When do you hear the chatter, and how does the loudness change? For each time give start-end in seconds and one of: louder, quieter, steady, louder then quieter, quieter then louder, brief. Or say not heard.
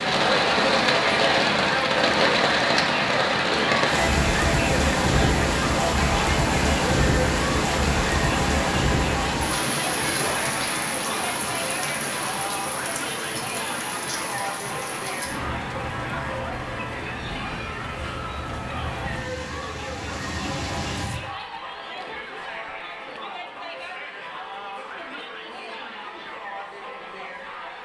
0.0-27.8 quieter.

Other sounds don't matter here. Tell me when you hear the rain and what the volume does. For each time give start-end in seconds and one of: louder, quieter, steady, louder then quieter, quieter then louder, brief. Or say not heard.
0.0-21.2 quieter.